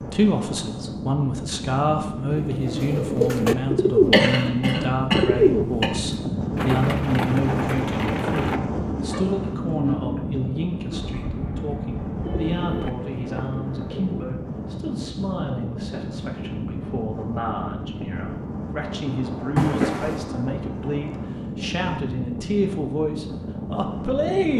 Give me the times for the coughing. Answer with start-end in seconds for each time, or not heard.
4.0-5.9, 19.6-20.2.